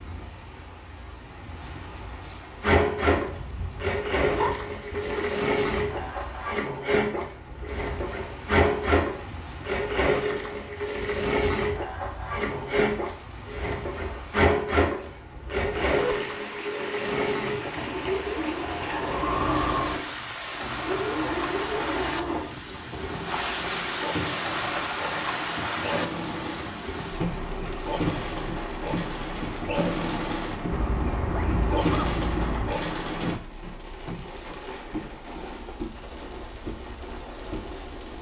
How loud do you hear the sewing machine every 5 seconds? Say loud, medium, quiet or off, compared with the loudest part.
loud, loud, loud, loud, medium, medium, medium, off.